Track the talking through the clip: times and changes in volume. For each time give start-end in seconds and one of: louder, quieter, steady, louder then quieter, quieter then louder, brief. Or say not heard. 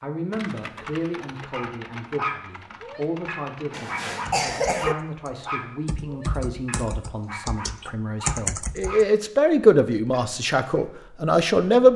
0.0-11.9 louder.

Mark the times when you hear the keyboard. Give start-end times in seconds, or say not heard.
0.3-9.1.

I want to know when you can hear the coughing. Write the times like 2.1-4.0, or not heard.
3.7-5.0.